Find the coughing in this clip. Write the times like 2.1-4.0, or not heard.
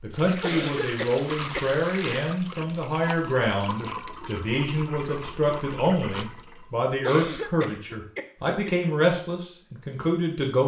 0.4-1.6, 7.0-8.9.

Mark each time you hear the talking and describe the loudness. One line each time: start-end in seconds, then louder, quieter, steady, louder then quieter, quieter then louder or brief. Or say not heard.
0.0-10.6 steady.